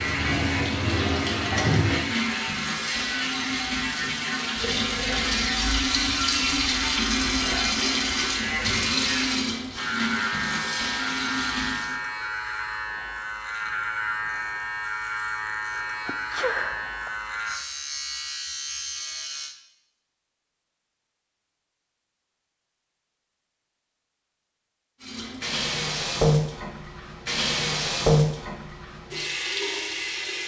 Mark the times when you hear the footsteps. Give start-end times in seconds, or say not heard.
not heard.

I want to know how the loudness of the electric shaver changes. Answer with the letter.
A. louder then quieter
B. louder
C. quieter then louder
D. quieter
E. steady
E.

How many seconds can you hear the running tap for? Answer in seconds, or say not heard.
17 s.